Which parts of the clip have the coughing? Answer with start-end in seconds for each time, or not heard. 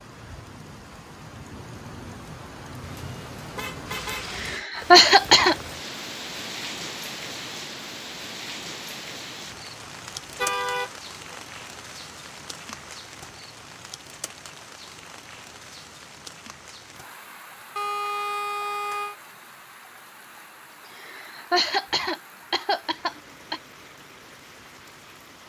4.3-5.5, 20.9-23.6.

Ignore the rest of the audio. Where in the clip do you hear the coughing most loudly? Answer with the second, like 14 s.
5 s.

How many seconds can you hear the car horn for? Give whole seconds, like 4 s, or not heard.
4 s.